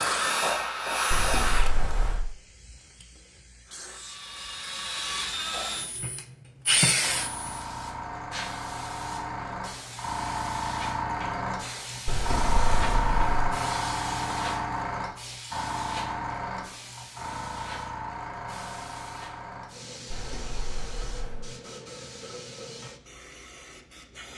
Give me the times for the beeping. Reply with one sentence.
You can hear the beeping from 1.1 to 2.2 s, from 12.1 to 13.4 s and from 20.1 to 21.4 s.